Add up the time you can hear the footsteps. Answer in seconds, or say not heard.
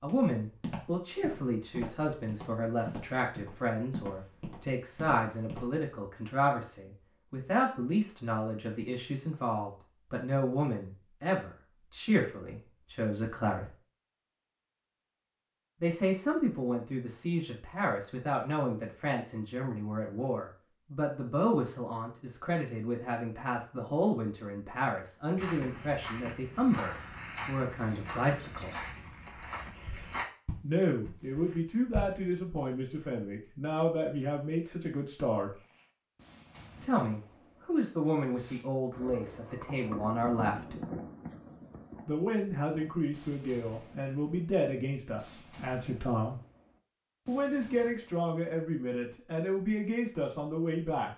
13 s.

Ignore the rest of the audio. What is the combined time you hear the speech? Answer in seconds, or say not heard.
44 s.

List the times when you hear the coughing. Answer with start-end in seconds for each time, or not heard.
not heard.